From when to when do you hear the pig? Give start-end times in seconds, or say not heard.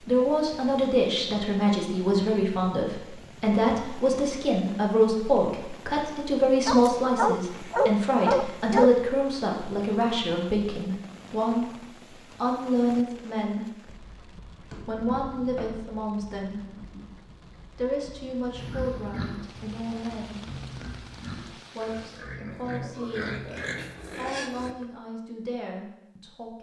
18.5-24.9.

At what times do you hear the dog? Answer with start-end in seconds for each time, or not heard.
6.7-8.9.